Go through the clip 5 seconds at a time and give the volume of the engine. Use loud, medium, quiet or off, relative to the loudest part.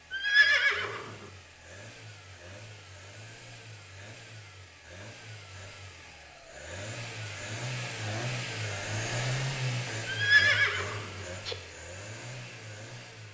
quiet, loud, medium.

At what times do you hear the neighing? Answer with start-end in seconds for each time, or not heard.
0.1-1.1, 10.1-11.6.